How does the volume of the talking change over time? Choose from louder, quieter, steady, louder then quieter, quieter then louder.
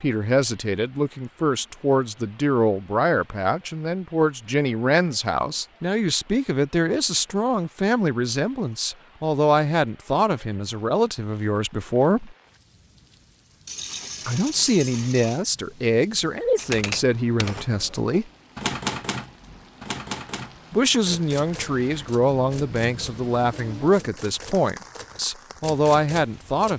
steady.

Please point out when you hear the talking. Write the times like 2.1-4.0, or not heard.
0.0-12.3, 14.2-18.3, 20.7-26.7.